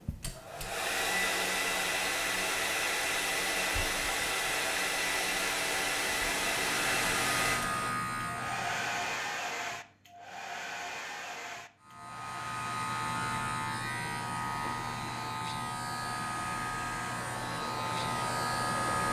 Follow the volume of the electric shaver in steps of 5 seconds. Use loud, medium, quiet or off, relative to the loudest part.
off, loud, loud, loud.